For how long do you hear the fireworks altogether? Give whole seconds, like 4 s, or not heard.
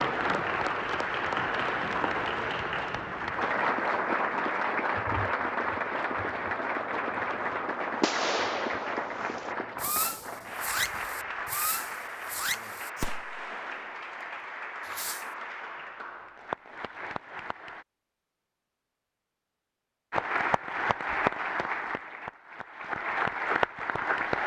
7 s.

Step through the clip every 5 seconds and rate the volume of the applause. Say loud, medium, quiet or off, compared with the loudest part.
loud, loud, medium, medium, loud.